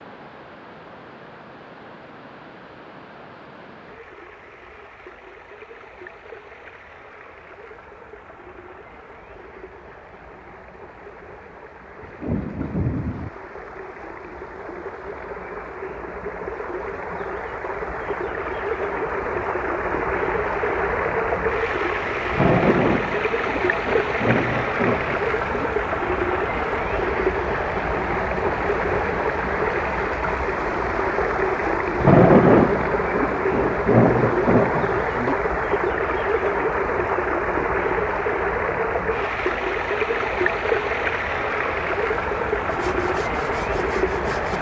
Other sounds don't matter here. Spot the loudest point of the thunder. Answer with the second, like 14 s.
32 s.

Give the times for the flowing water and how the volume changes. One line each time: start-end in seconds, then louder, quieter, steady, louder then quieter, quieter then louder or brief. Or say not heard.
0.0-44.5 louder.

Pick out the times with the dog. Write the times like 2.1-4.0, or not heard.
not heard.